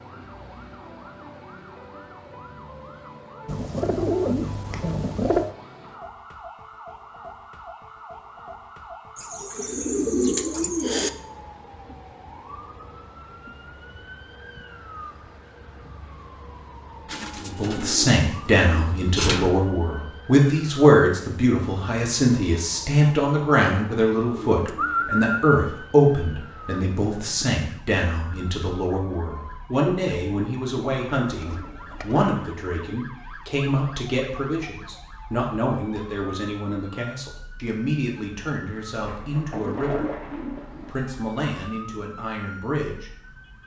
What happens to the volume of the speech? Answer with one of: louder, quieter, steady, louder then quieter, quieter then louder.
quieter.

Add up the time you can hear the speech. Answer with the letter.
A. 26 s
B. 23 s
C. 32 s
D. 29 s
A.